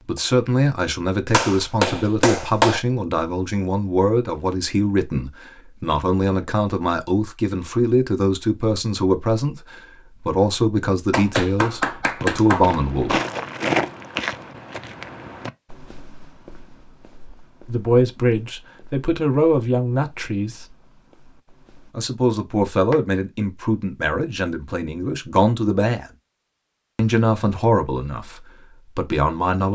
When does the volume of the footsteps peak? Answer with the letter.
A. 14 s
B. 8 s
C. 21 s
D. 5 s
A.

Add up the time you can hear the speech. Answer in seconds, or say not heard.
23 s.